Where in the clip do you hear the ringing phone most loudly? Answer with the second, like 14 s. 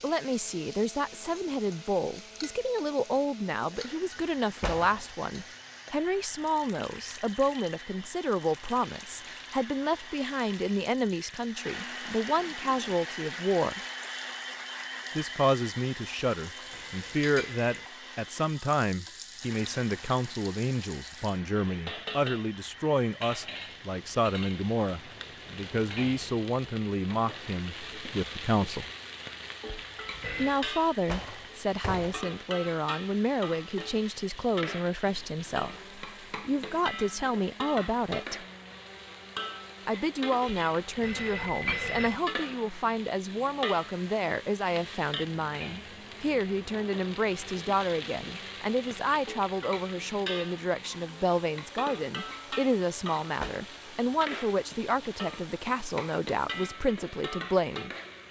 42 s.